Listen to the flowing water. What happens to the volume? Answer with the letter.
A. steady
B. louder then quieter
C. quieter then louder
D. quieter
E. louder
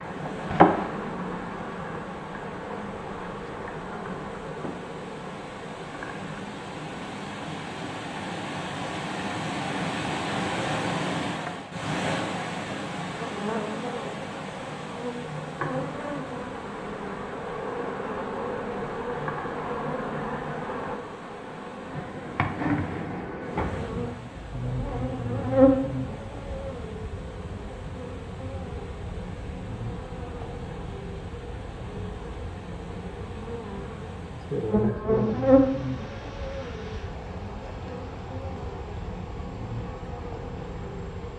B.